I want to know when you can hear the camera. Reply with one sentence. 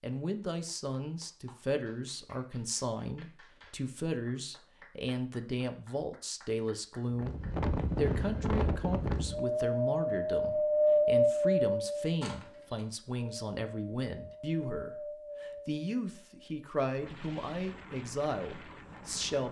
You can hear the camera from 12.2 to 12.8 s.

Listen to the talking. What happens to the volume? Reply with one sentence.
The loudness of the talking stays about the same.